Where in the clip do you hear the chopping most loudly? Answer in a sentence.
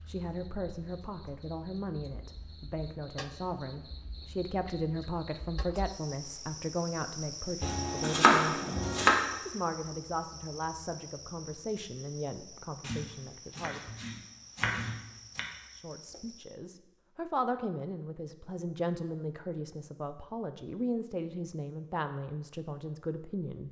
The volume of the chopping peaks at 8 seconds.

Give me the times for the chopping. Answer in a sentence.
You can hear the chopping from 7.6 to 9.2 s and from 12.8 to 15.4 s.